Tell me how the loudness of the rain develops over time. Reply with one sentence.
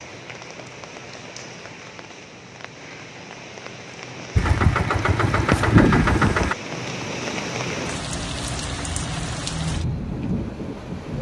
The loudness of the rain goes up.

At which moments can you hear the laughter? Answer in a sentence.
The laughter can't be heard in this clip.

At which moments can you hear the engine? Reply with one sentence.
The engine can be heard from 4.3 to 6.5 s.